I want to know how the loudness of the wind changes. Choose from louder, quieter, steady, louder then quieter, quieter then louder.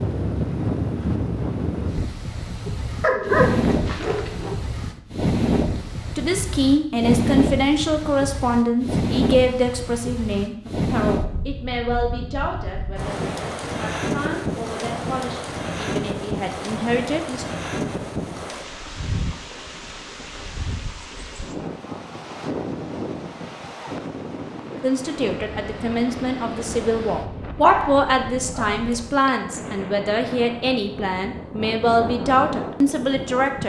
quieter.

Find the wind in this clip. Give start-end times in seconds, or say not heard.
0.0-33.6.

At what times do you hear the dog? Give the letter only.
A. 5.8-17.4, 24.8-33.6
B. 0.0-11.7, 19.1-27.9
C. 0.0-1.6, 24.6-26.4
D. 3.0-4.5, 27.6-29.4
D.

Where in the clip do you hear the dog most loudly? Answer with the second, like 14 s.
3 s.